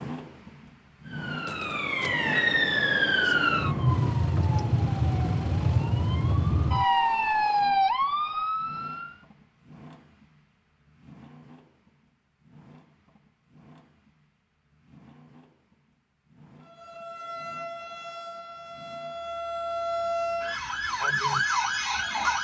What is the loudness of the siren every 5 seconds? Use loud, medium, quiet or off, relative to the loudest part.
loud, loud, off, medium, loud.